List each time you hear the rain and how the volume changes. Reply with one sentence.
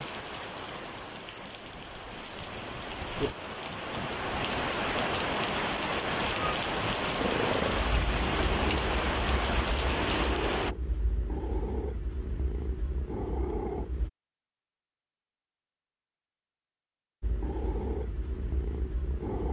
You can hear the rain from 0.0 to 10.8 s, getting louder.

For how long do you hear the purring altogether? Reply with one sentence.
The purring can be heard for 9 seconds in total.